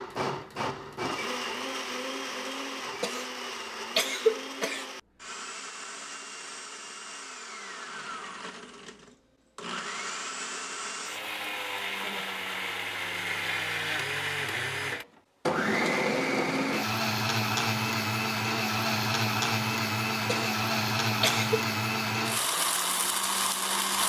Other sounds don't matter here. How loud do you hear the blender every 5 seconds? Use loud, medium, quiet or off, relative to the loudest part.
medium, quiet, medium, loud, loud.